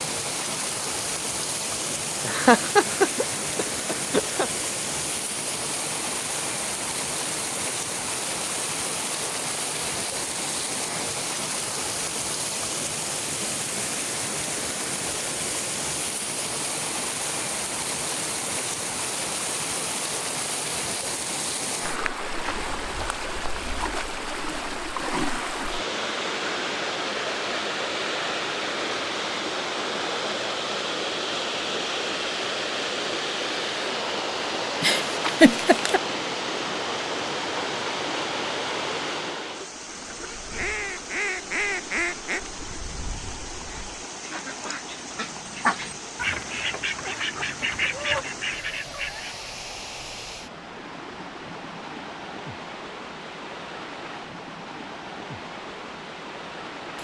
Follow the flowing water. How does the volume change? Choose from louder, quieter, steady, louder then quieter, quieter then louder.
quieter.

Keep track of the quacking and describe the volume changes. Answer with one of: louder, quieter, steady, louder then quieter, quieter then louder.
quieter then louder.